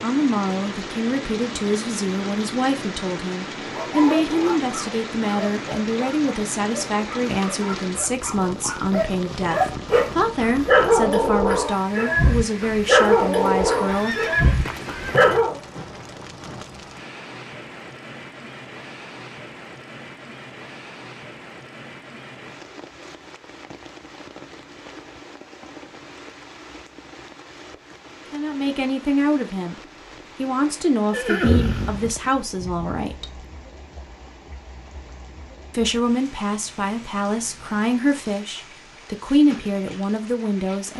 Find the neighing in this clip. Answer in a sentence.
You can hear the neighing from 13.8 to 15.4 s and from 31.1 to 33.0 s.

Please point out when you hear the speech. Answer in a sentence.
You can hear the speech from 0.0 to 14.3 s, from 28.3 to 33.5 s and from 35.7 to 40.9 s.